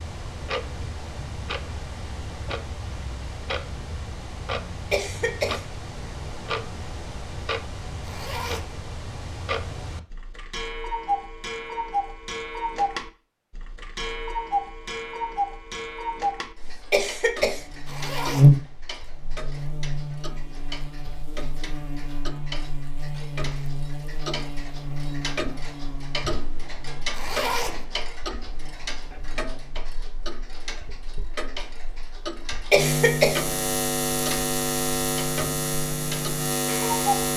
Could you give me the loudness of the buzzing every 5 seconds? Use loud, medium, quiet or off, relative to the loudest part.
off, off, off, loud, quiet, quiet, medium, medium.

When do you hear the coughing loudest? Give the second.
33 s.